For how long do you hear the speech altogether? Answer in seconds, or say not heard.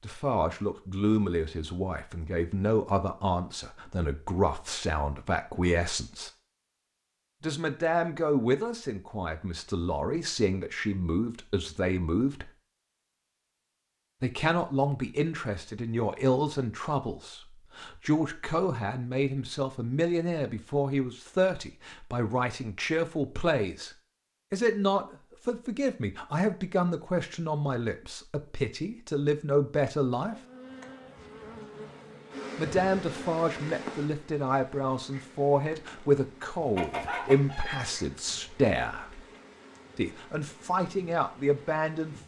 36 s.